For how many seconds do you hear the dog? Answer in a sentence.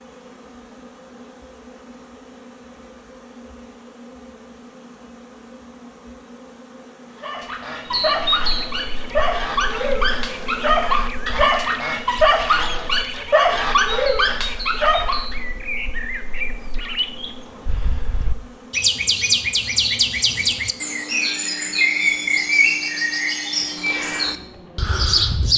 You can hear the dog for 8 seconds altogether.